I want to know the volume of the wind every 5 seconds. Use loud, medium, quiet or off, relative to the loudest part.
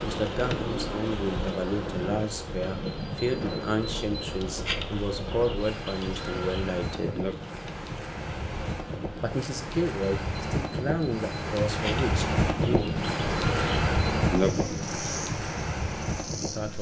medium, medium, loud, medium.